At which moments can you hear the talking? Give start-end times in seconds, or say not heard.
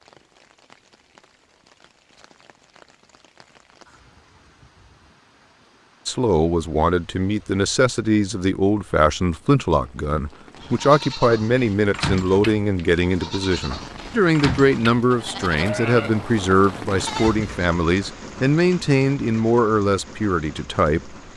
6.0-21.1.